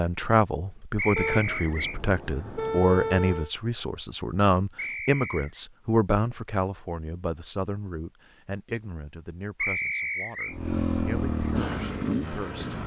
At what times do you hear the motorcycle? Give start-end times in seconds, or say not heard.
10.5-12.8.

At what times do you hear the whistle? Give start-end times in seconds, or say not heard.
0.9-2.0, 4.8-5.6, 9.6-10.6.